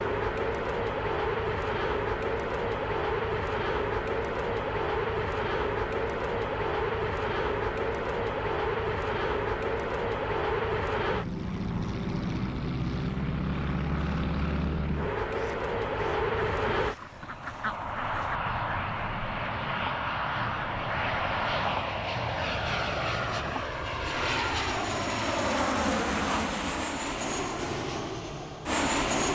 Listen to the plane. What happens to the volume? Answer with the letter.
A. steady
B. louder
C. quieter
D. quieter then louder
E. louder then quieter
A.